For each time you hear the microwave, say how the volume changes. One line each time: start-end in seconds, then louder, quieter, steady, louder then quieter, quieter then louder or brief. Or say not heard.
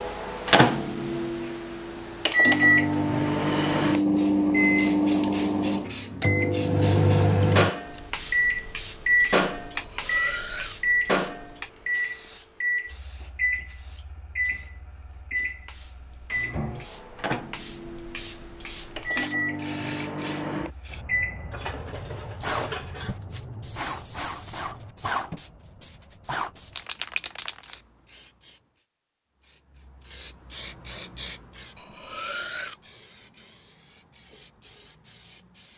0.0-21.6 quieter.